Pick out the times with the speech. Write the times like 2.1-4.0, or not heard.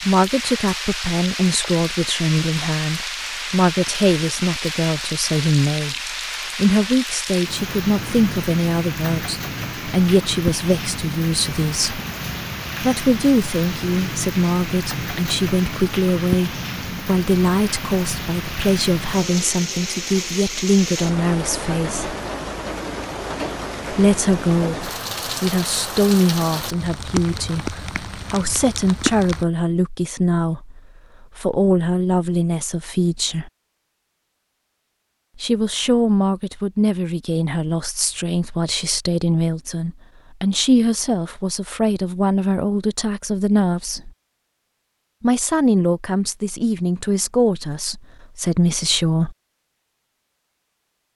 0.1-12.0, 12.8-22.1, 23.9-33.5, 35.4-44.1, 45.2-49.4.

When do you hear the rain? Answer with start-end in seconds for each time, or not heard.
0.0-29.4.